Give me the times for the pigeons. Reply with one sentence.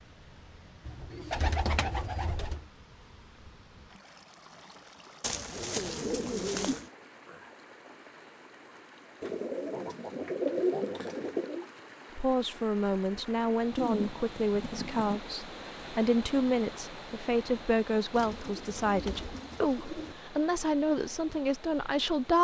You can hear the pigeons from 0.8 to 2.6 s, from 5.2 to 6.9 s, from 9.2 to 11.7 s, from 13.8 to 15.2 s and from 18.1 to 20.1 s.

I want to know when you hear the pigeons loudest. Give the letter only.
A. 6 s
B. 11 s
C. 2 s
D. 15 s
B.